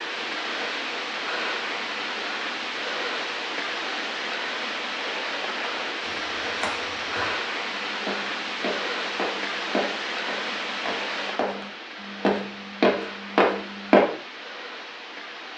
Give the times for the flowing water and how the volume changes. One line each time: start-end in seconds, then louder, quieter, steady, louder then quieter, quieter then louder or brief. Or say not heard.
0.0-15.5 quieter.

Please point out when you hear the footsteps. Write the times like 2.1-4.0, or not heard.
6.0-11.7, 12.2-14.1.